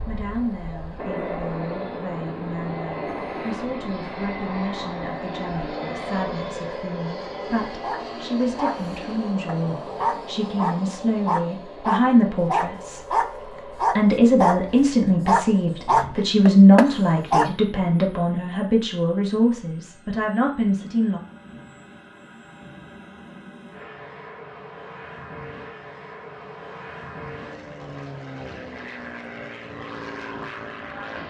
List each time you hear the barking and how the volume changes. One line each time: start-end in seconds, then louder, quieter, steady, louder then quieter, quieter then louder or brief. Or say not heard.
7.8-14.6 louder
15.2-17.5 brief.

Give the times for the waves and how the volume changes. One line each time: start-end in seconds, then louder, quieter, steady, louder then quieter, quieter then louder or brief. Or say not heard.
not heard.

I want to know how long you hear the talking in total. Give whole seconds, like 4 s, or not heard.
21 s.